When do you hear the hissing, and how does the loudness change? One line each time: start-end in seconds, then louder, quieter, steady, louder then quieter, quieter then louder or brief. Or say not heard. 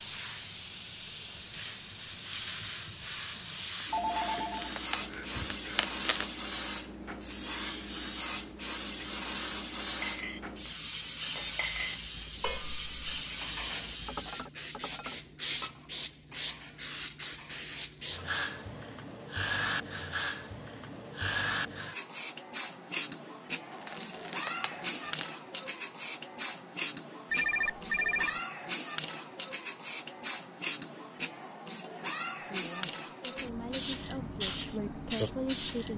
0.0-35.9 steady.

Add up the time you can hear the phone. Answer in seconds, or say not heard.
3 s.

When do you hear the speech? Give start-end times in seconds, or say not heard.
32.5-35.9.